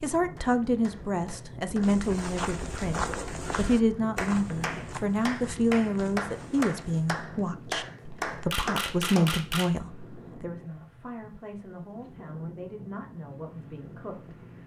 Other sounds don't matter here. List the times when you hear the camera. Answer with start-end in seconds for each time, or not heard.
8.5-9.7.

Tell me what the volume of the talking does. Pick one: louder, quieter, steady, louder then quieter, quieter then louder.
quieter.